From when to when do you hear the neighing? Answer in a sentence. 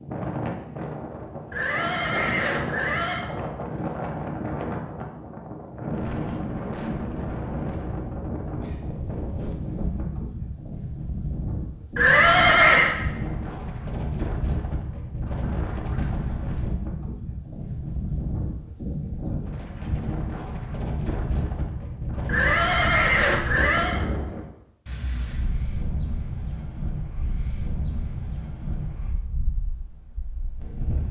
The neighing can be heard from 1.5 to 3.2 s, from 11.9 to 12.9 s and from 22.2 to 24.0 s.